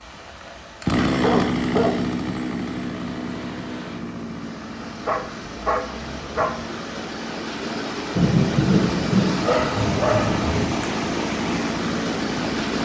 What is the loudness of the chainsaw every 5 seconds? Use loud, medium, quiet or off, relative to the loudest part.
loud, medium, loud.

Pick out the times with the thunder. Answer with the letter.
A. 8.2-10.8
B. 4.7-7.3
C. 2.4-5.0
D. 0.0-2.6
A.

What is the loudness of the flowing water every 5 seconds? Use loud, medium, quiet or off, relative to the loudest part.
quiet, loud, loud.